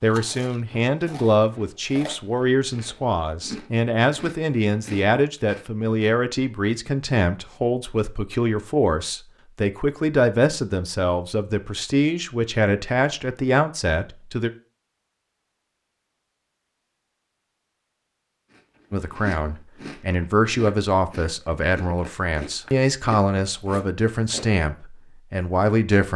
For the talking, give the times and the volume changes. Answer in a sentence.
You can hear the talking from 0.0 to 14.5 s, at a steady volume; and from 18.9 to 26.1 s, at a steady volume.